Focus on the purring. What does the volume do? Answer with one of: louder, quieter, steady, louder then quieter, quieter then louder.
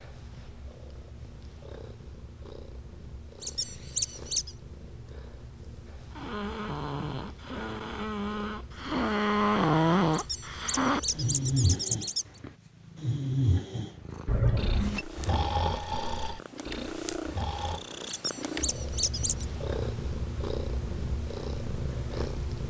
louder.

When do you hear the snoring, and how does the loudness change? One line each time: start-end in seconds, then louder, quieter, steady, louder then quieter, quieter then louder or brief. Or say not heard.
6.2-17.8 louder then quieter.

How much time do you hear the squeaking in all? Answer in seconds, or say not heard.
5 s.